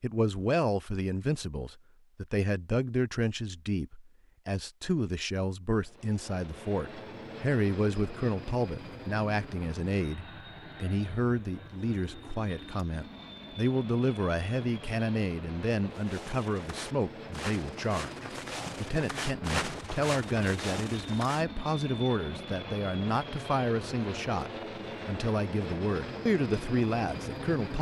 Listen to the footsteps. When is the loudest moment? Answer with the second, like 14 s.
20 s.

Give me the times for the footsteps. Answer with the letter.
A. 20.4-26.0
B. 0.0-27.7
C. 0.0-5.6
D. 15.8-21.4
D.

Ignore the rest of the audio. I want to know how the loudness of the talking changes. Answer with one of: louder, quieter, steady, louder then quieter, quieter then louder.
steady.